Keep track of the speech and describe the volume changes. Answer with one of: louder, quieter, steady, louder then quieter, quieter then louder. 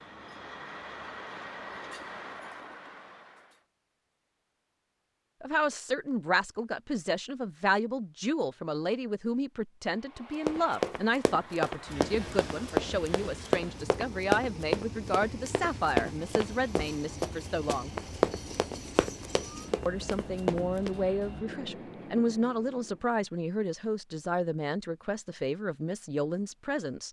steady.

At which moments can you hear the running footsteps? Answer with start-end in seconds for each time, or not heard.
10.4-20.9.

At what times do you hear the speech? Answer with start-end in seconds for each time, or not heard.
5.4-17.9, 19.9-27.0.